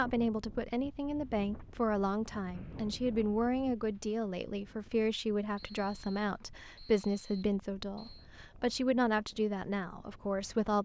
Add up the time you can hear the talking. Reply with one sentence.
You can hear the talking for 11 seconds altogether.